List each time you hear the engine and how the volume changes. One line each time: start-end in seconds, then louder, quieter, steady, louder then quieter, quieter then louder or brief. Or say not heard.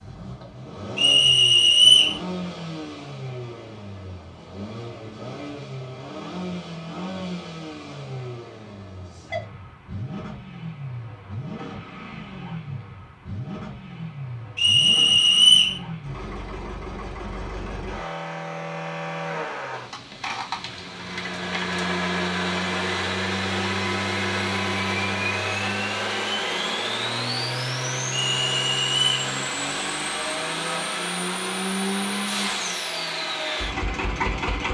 0.0-34.7 louder.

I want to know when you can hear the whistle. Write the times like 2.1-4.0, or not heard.
0.9-2.1, 14.6-15.8, 28.3-29.1.